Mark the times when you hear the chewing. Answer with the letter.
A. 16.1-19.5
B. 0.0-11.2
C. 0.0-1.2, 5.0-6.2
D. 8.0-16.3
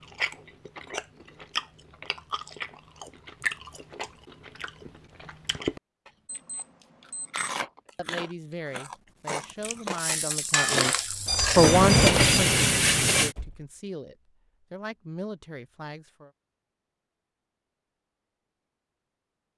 B.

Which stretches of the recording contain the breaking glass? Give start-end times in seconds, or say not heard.
not heard.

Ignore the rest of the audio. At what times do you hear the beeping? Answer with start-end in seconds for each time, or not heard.
6.2-7.5, 11.2-12.4.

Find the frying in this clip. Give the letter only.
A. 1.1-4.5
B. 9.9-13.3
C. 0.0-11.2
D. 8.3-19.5
B.